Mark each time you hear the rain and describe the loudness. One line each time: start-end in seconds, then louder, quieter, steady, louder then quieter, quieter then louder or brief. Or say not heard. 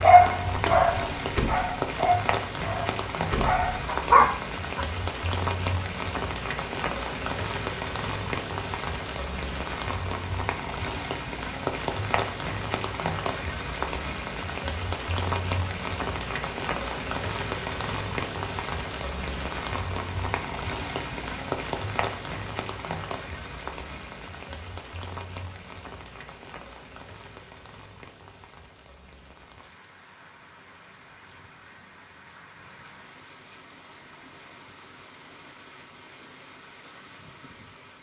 0.0-37.9 quieter.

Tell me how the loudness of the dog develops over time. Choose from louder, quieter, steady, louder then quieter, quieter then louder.
quieter then louder.